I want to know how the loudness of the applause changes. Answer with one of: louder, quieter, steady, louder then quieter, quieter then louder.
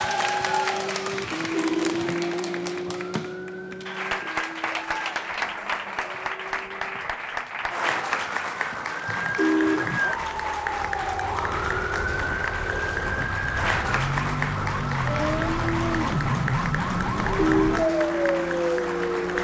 steady.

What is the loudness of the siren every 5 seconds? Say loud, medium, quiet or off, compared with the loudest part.
quiet, medium, loud, loud.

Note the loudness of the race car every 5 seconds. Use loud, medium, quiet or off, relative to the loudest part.
loud, quiet, off, loud.